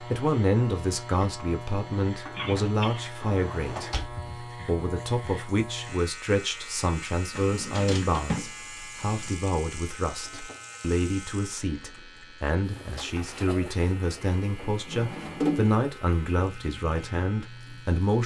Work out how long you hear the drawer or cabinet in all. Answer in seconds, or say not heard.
5 s.